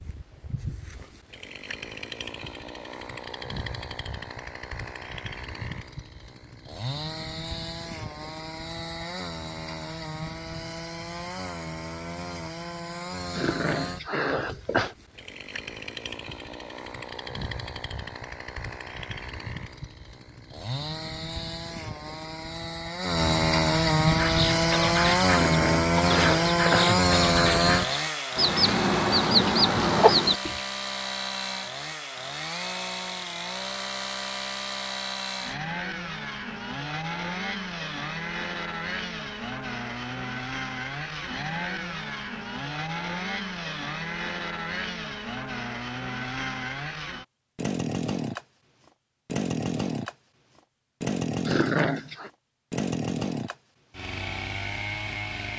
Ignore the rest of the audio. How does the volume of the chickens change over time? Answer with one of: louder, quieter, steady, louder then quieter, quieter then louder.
louder.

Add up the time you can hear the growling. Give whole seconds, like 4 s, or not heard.
4 s.